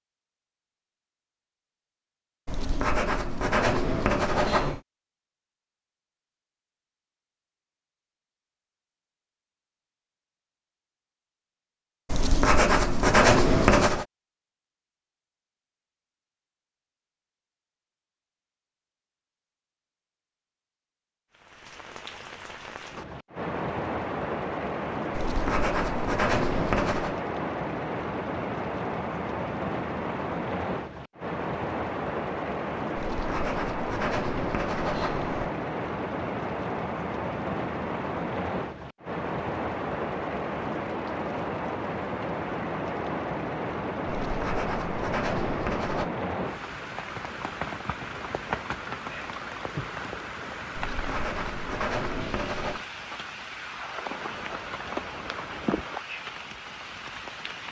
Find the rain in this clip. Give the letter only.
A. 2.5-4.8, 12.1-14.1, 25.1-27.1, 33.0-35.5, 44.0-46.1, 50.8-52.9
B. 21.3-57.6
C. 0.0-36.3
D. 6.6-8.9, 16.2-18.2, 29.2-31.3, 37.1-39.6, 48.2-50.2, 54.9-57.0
B.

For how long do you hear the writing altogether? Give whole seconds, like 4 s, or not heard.
13 s.